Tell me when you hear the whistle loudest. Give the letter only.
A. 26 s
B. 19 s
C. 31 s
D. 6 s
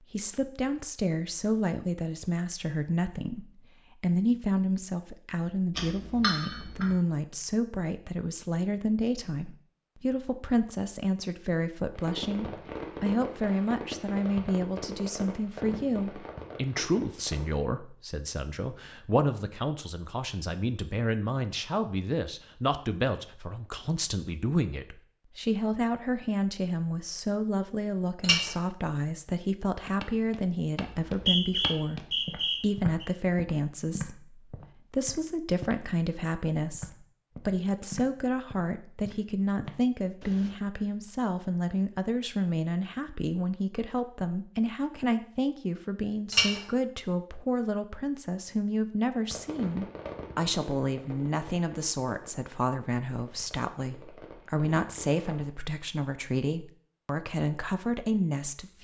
C.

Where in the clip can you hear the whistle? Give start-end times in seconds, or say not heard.
30.9-33.0.